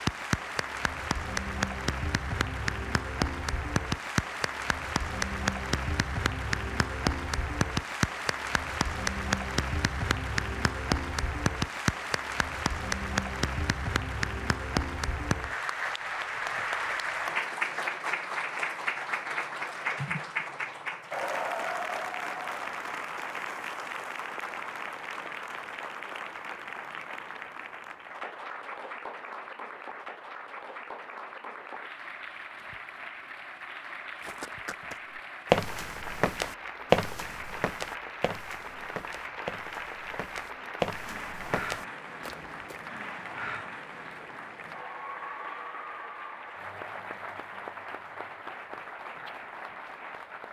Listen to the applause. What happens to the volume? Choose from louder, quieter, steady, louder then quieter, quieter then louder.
quieter.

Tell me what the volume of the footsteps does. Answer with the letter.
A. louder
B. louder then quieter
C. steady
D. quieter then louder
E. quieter
D.